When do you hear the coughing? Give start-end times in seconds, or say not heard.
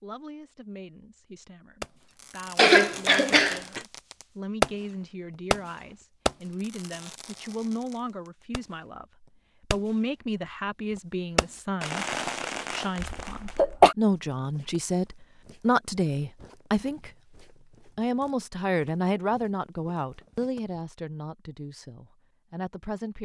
2.5-3.8, 13.0-13.9.